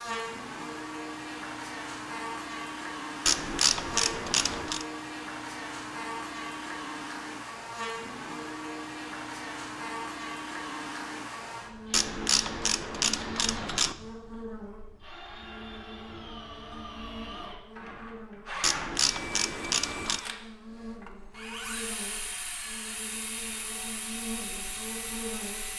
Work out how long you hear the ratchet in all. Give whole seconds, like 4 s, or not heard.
5 s.